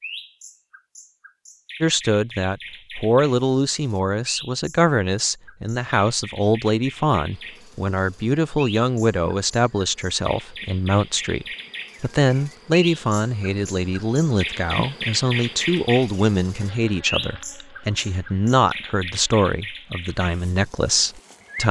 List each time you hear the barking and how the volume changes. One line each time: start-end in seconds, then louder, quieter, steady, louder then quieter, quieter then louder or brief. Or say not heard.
not heard.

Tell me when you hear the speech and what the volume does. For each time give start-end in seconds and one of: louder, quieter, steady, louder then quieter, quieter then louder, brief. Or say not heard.
1.8-21.6 steady.